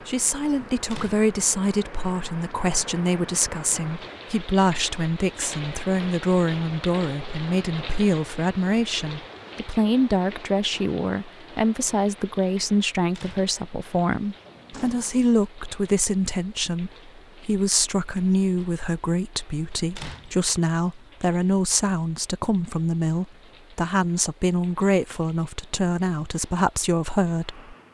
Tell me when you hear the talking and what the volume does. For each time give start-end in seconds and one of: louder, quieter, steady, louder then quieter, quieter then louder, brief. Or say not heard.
0.1-27.7 steady.